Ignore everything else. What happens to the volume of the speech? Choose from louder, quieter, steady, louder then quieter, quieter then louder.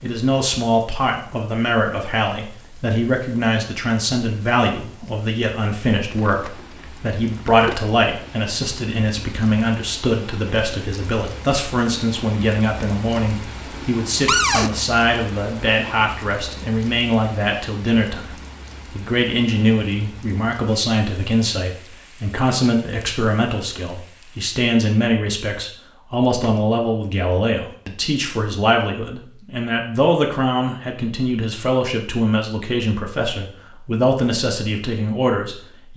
steady.